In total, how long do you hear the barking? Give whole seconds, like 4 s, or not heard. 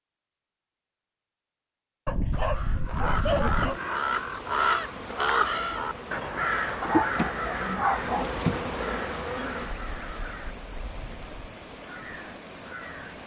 3 s.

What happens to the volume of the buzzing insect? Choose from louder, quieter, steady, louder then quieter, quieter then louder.
louder then quieter.